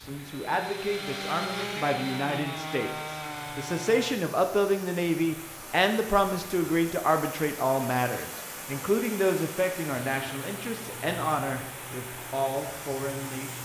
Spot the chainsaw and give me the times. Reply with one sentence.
The chainsaw can be heard from 0.0 to 4.2 s.